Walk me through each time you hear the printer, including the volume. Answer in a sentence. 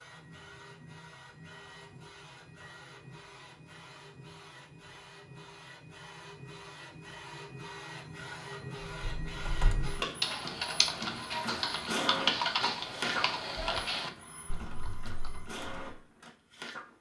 You can hear the printer from 0.0 to 16.9 s, getting louder then quieter.